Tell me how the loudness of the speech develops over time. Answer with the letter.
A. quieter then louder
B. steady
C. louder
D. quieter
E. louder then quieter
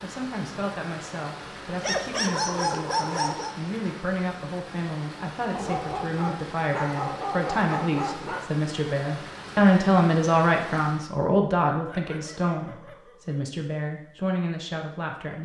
E.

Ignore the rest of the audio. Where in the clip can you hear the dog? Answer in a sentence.
You can hear the dog from 1.8 to 3.5 s, from 5.5 to 8.4 s and from 11.7 to 13.4 s.